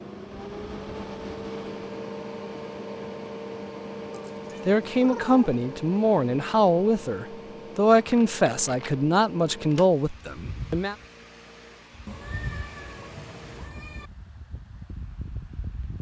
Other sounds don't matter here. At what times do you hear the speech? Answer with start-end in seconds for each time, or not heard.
4.7-10.9.